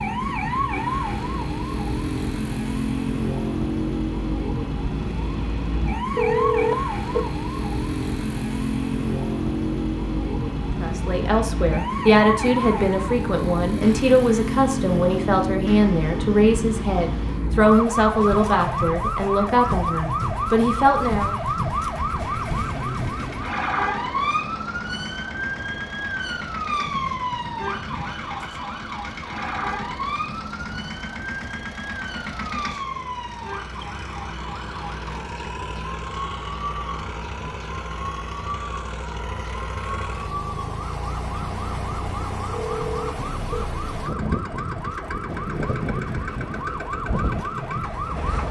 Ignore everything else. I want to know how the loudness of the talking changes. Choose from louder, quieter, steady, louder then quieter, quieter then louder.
steady.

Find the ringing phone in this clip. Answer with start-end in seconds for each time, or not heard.
6.2-7.2, 42.5-43.7.